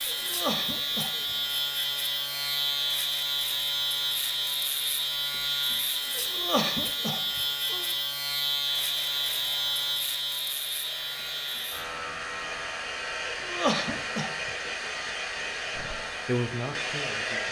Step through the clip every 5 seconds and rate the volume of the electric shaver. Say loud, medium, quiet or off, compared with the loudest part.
loud, loud, medium, quiet.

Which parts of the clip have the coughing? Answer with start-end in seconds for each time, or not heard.
0.1-1.1, 6.2-7.8, 13.2-14.3.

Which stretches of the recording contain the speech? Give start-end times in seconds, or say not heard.
15.8-17.4.